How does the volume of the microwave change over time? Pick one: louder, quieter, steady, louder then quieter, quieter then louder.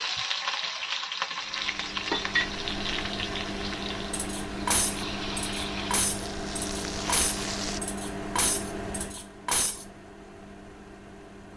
quieter.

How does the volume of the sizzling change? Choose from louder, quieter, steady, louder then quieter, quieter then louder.
quieter.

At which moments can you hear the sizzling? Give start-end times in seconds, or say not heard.
0.0-7.8.